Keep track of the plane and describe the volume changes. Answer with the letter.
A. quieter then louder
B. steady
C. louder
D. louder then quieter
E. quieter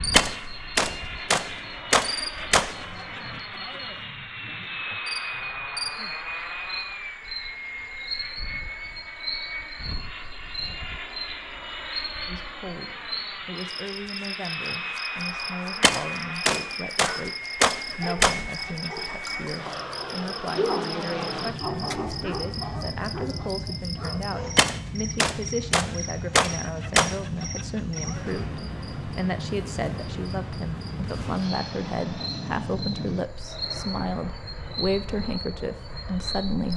B.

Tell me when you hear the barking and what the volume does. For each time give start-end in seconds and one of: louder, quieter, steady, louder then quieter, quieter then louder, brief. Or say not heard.
17.1-24.6 louder then quieter.